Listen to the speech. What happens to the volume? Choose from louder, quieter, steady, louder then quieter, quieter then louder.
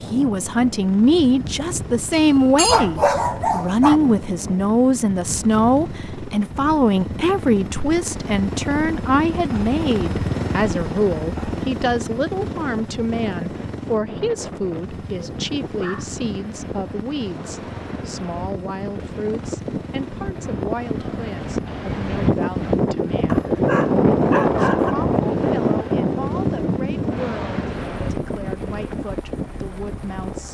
quieter.